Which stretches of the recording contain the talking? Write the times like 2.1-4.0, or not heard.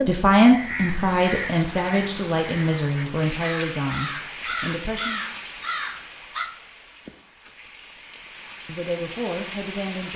0.1-5.2, 8.7-10.1.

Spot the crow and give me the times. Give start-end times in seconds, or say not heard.
0.5-6.5.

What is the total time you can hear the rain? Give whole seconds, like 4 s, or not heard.
10 s.